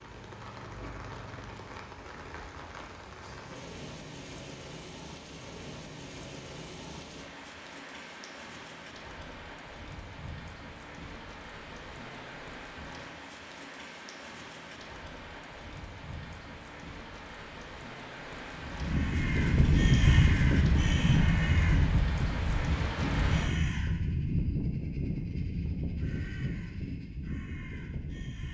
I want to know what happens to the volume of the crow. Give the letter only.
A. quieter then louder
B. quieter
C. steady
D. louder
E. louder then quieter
B.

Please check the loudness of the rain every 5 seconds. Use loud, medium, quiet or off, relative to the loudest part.
medium, medium, medium, medium, loud, off.